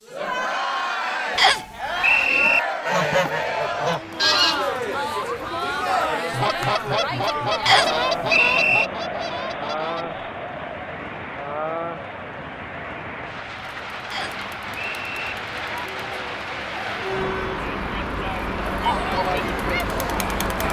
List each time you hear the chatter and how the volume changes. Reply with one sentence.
You can hear the chatter from 0.1 to 20.6 s, getting quieter then louder.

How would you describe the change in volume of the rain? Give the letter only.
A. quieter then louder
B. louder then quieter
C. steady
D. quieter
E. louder
E.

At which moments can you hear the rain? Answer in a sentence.
You can hear the rain from 3.3 to 20.6 s.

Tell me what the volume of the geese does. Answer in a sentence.
The volume of the geese goes down.